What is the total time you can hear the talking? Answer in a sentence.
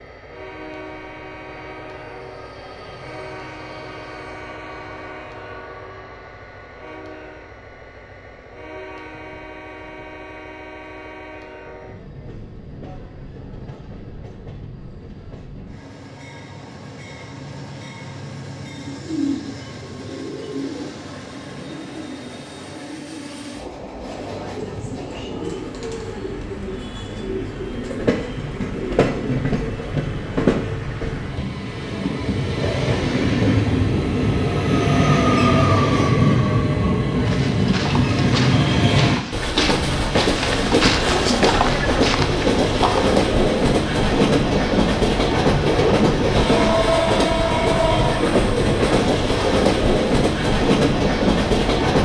You can't hear the talking here.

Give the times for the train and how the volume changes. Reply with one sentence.
The train can be heard from 0.0 to 52.0 s, getting louder.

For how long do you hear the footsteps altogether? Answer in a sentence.
The footsteps can be heard for 6 seconds in total.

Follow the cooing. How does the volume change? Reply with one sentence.
The loudness of the cooing goes down, then up.